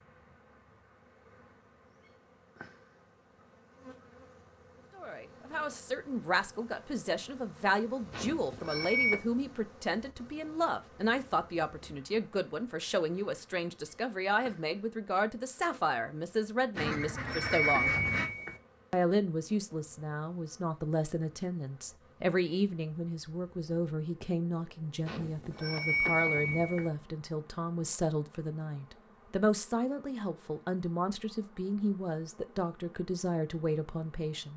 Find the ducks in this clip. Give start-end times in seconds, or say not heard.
16.8-18.3.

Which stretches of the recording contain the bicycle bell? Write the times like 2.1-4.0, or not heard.
8.1-9.2, 16.8-18.6, 25.1-26.9.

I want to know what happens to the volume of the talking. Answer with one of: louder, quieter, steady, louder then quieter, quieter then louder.
steady.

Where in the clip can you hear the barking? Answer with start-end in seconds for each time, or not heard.
not heard.